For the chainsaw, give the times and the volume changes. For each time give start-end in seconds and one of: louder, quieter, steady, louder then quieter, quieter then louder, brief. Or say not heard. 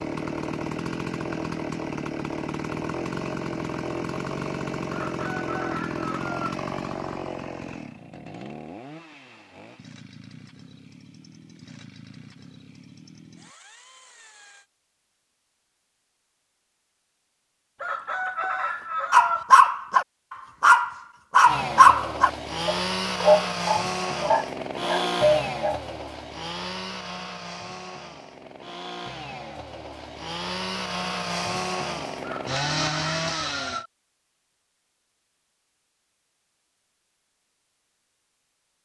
0.0-14.7 quieter
21.4-33.9 quieter then louder.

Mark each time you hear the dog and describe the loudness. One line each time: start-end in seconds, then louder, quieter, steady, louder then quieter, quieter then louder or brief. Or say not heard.
19.1-25.8 quieter.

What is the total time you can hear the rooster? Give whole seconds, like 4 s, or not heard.
5 s.